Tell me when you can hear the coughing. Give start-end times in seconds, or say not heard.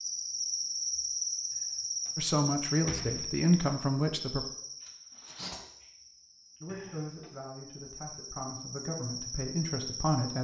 not heard.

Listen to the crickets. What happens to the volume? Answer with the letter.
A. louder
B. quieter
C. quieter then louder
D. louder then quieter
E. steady
C.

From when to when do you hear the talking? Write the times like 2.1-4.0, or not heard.
2.1-4.5, 6.6-10.3.